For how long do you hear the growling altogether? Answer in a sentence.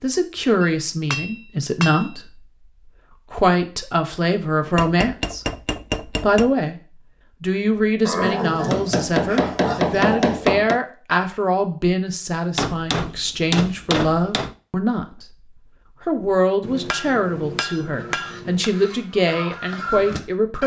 The growling can be heard for 2 seconds in total.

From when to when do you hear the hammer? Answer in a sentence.
You can hear the hammer from 0.6 to 2.1 s, from 4.8 to 6.5 s, from 8.7 to 10.8 s, from 12.6 to 14.6 s and from 16.6 to 18.7 s.